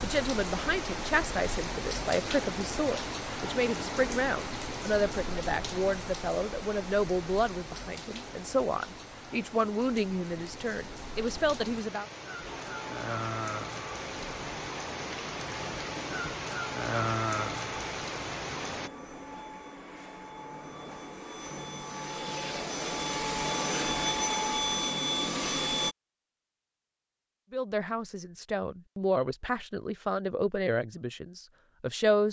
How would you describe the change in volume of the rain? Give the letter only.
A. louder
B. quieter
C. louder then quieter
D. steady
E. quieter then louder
E.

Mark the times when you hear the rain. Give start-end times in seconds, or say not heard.
0.0-18.9.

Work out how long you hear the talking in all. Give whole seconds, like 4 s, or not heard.
17 s.